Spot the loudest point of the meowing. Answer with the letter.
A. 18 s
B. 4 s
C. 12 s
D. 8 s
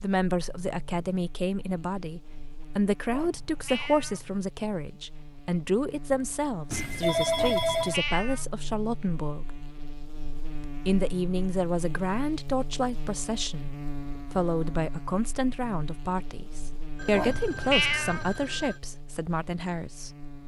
A.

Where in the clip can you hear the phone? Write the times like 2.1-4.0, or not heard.
6.7-8.0, 16.9-18.8.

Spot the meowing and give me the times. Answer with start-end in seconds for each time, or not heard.
3.0-4.3, 7.3-8.4, 17.1-18.4.